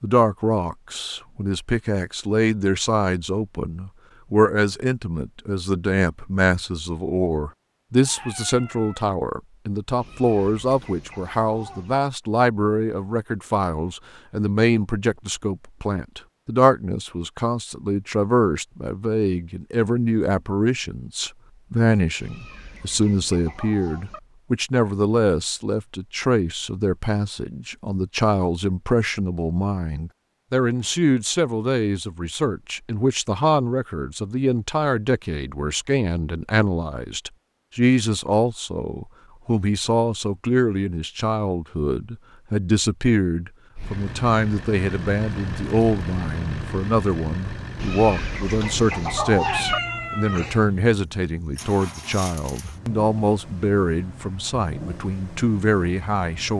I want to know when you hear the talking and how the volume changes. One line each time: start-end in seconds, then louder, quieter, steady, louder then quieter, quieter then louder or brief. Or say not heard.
0.0-56.5 steady.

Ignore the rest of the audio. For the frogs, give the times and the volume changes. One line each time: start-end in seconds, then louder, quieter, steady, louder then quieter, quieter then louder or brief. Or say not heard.
not heard.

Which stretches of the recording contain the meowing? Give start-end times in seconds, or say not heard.
8.0-9.1, 49.3-50.6.